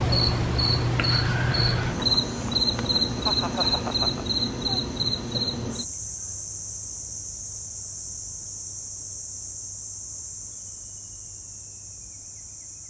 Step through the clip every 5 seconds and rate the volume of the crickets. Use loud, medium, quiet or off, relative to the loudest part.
loud, medium, quiet.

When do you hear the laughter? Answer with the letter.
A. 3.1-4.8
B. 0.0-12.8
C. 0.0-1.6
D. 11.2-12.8
A.